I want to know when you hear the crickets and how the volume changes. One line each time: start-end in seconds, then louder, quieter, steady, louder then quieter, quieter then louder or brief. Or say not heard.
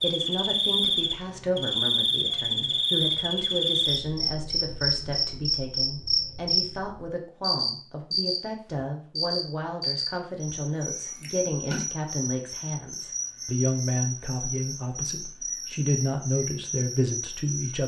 0.0-17.8 quieter.